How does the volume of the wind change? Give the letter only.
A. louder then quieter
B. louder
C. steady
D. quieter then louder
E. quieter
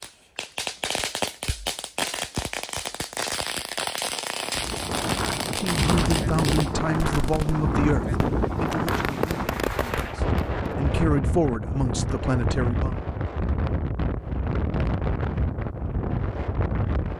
C.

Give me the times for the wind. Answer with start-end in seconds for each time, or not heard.
4.5-17.1.